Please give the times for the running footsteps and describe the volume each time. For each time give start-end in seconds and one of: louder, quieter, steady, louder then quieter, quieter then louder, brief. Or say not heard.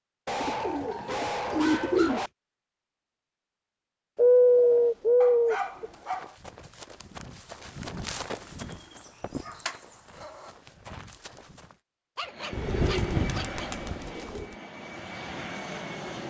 5.8-11.8 louder then quieter.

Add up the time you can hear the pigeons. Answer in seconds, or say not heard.
6 s.